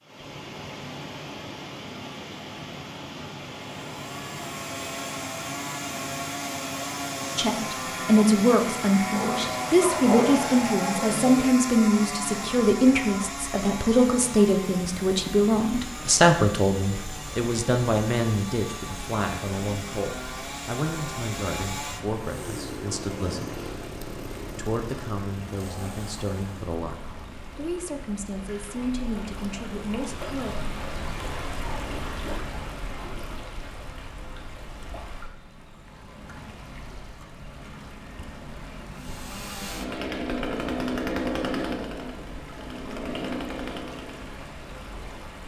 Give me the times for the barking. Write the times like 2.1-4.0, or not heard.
9.1-11.2.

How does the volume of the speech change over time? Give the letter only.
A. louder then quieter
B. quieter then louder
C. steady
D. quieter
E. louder
D.